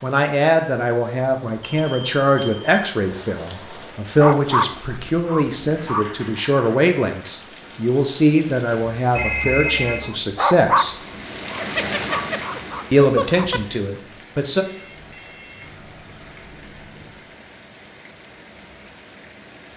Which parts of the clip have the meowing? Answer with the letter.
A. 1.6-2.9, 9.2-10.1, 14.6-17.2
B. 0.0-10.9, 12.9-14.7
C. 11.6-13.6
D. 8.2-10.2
C.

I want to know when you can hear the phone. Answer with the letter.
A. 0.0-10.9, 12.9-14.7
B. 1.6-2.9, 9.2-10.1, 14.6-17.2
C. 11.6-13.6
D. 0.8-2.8
B.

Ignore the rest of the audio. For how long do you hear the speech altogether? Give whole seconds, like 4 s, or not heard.
13 s.